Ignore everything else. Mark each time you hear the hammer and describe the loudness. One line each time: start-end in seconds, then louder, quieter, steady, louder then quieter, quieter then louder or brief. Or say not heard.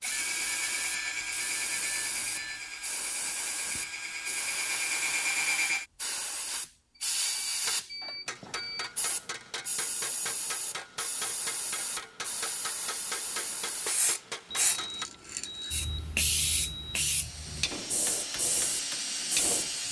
7.6-15.1 steady
17.4-19.8 brief.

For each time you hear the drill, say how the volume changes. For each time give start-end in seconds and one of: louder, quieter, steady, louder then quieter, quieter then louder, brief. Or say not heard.
0.0-5.8 quieter then louder
17.1-19.8 brief.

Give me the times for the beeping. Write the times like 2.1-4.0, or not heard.
0.1-2.7, 7.0-8.9, 14.4-17.1.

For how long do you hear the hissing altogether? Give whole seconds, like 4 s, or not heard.
20 s.